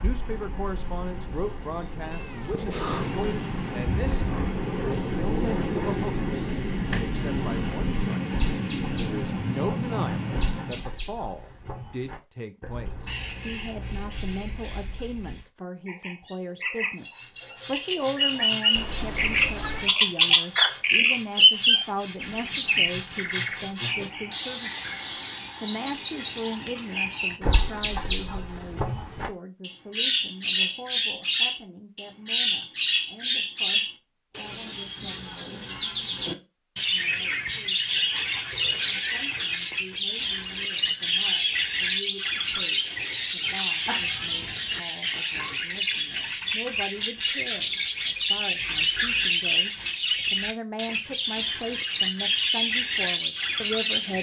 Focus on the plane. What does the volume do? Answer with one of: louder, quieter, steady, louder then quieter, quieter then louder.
louder.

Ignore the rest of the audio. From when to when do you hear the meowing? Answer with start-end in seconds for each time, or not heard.
2.1-3.4, 18.8-19.9, 43.9-44.8.